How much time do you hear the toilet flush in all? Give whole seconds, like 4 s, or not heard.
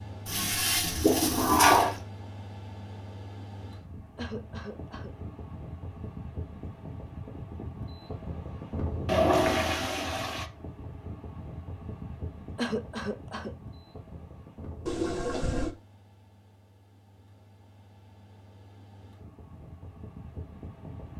4 s.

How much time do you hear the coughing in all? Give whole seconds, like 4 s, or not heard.
2 s.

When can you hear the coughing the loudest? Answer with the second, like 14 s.
13 s.